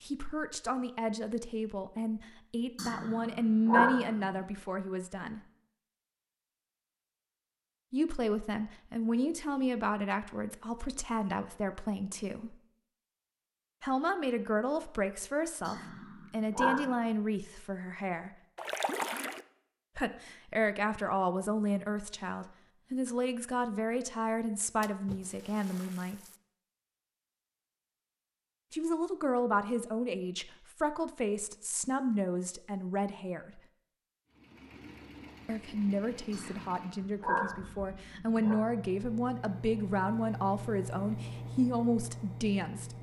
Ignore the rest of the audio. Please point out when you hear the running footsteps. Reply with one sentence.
The running footsteps can't be heard in this clip.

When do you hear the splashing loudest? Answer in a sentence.
The loudest moment of the splashing is at 19 seconds.